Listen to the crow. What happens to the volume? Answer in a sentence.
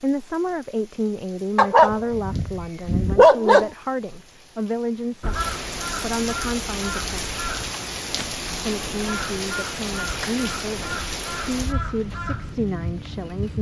The volume of the crow stays about the same.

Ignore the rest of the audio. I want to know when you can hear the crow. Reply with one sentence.
The crow can be heard from 5.2 to 12.6 s.